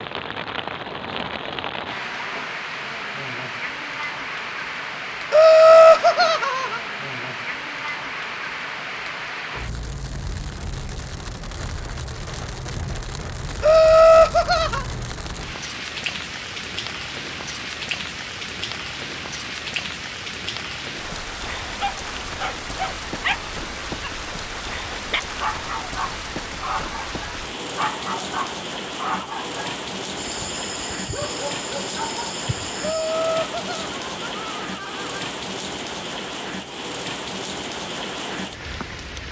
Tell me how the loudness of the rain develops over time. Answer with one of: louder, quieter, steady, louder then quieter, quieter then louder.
steady.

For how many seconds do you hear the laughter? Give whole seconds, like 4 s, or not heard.
5 s.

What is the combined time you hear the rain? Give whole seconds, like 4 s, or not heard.
39 s.